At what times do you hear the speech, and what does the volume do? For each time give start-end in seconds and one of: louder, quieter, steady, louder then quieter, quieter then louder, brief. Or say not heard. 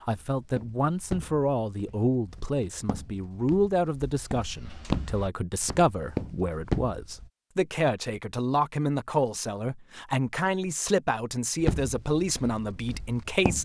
0.0-13.5 steady.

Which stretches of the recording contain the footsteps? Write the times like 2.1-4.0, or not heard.
0.1-7.3, 11.6-13.5.